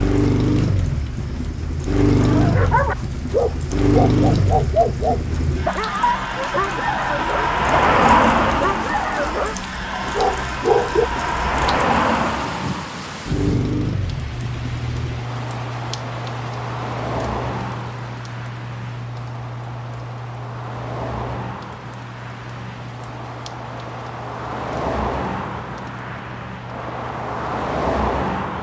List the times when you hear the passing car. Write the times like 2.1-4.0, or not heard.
0.0-28.5.